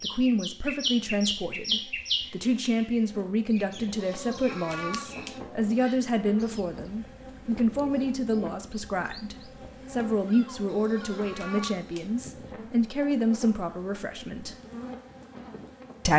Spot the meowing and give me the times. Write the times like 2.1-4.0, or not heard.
4.0-5.4, 10.7-12.1.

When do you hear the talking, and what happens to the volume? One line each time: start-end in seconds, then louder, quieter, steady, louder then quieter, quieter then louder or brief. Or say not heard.
0.0-14.6 steady.